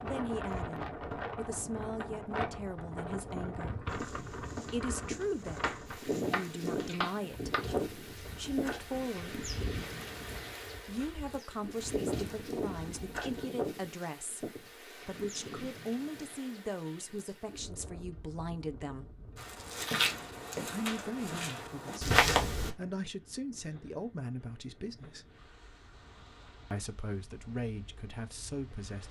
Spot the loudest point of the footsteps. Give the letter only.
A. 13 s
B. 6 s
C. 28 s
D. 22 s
D.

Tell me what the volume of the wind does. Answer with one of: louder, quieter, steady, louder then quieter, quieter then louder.
quieter.